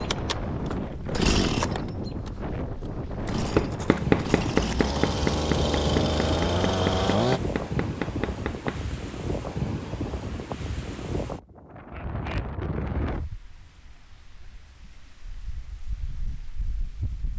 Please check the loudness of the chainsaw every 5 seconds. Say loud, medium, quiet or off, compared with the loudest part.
medium, loud, off, off.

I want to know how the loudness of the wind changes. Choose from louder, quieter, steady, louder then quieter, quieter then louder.
quieter.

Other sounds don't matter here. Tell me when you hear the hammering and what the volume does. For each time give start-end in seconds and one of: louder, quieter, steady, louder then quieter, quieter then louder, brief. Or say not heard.
3.5-8.9 quieter.